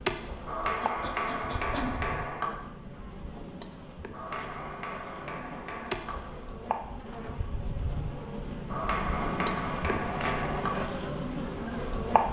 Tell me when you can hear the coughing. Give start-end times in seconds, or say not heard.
0.8-2.0.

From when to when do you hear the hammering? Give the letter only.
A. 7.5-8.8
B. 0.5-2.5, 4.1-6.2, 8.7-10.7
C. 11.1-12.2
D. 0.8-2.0
B.